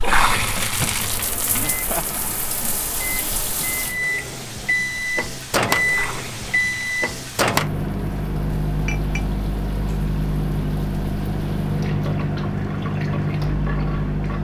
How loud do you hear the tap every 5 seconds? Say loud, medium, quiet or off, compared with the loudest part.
loud, quiet, quiet.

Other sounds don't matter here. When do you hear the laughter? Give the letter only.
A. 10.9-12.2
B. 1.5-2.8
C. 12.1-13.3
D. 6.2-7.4
B.